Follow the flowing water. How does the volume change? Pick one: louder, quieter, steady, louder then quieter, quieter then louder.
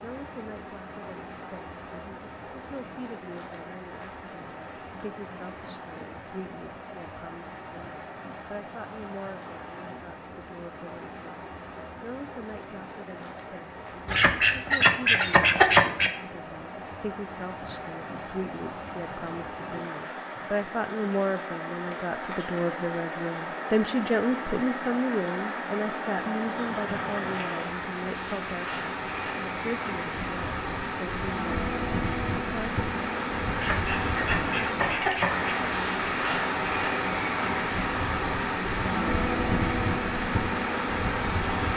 louder.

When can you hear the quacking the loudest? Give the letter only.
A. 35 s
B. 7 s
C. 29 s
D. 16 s
D.